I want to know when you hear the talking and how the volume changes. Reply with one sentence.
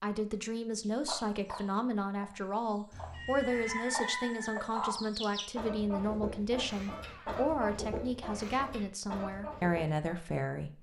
You can hear the talking from 0.0 to 10.7 s, at a steady volume.